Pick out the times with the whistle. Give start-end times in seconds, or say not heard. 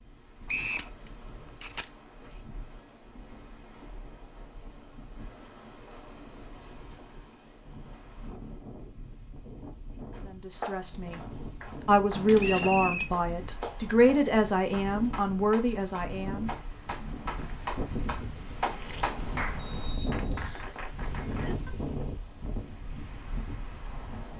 0.5-0.9, 12.4-13.1, 19.6-20.7.